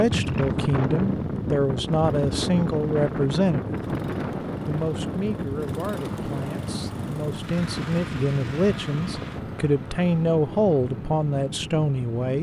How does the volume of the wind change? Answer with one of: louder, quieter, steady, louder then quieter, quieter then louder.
quieter.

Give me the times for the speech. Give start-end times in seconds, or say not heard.
0.0-3.8, 4.7-12.3.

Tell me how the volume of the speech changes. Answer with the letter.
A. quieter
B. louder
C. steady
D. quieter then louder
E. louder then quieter
D.